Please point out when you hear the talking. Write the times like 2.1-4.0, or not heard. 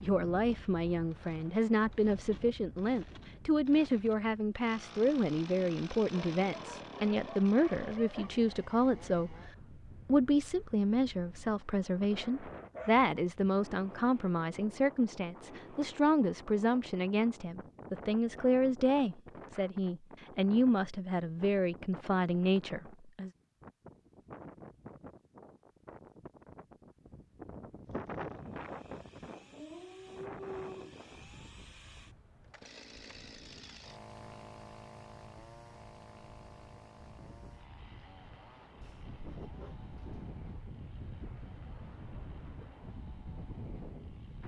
0.0-9.3, 10.1-23.3.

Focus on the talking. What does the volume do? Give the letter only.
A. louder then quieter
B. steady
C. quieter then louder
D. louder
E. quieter
B.